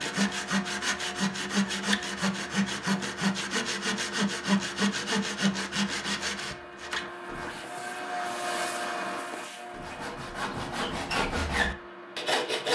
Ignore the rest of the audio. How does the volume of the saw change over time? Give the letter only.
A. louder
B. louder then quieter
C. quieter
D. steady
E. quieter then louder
E.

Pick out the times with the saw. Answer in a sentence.
The saw can be heard from 0.0 to 7.7 s and from 9.7 to 12.7 s.